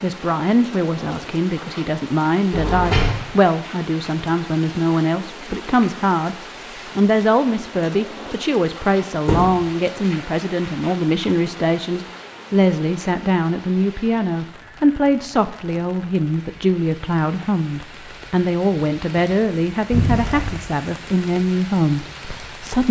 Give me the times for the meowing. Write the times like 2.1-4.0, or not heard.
not heard.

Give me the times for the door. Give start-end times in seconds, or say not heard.
2.5-3.2, 9.2-9.7, 19.9-20.6.